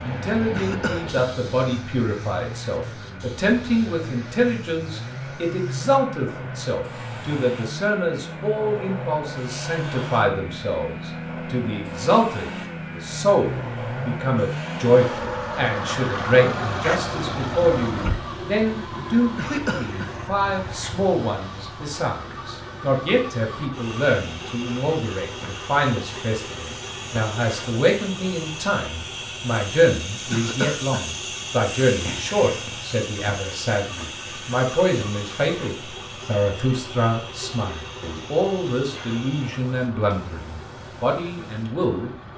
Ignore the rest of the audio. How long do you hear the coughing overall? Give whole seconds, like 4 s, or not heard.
2 s.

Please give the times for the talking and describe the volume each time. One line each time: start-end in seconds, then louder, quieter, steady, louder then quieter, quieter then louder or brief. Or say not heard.
0.0-42.1 steady.